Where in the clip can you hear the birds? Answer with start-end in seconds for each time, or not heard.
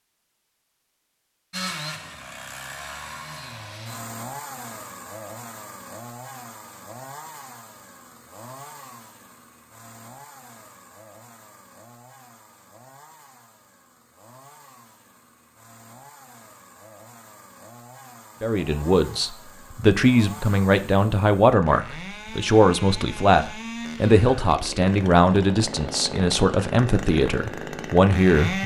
not heard.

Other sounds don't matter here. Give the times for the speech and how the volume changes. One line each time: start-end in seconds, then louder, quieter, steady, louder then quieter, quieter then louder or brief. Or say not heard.
18.4-28.6 steady.